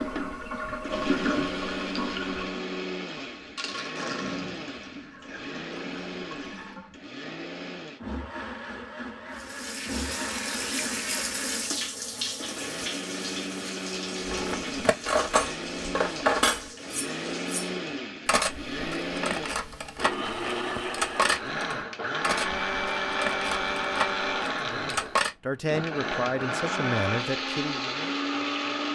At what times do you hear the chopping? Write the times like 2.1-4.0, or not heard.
not heard.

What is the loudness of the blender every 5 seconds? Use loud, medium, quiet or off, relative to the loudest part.
medium, medium, medium, medium, loud, loud.